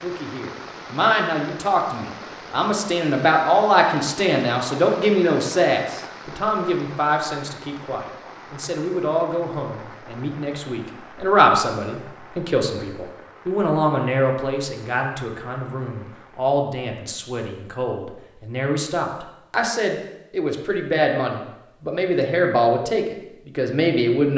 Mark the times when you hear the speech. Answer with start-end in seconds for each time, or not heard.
0.0-24.3.